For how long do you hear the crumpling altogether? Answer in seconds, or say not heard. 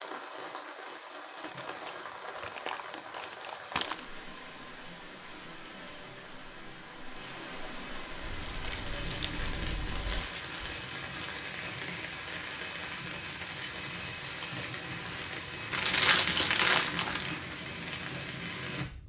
6 s.